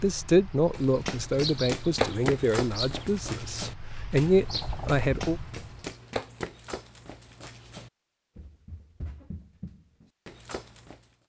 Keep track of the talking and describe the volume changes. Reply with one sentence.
The volume of the talking goes down, then up.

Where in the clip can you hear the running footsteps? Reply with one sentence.
You can hear the running footsteps from 0.7 to 11.1 s.